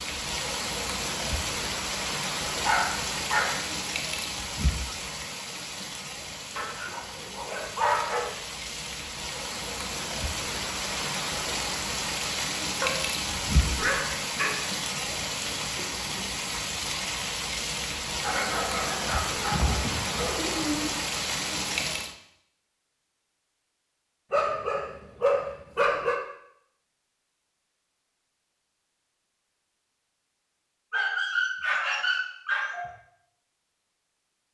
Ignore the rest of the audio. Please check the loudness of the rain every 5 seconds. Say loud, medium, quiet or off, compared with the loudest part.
loud, medium, loud, loud, loud, off, off.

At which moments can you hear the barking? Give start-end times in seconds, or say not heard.
2.5-3.6, 6.5-8.3, 12.8-14.6, 18.2-20.9, 24.3-26.1, 30.9-32.9.